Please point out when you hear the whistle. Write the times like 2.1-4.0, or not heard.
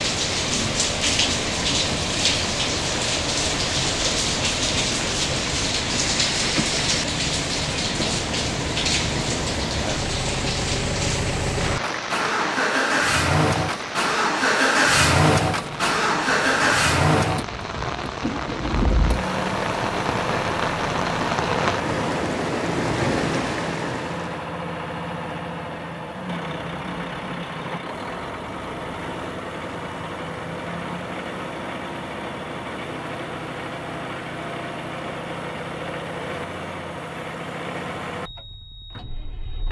not heard.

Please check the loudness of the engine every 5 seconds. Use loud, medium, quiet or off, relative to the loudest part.
medium, medium, loud, loud, medium, medium, medium, medium.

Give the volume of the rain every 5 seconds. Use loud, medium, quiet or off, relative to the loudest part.
loud, loud, medium, medium, loud, off, off, off.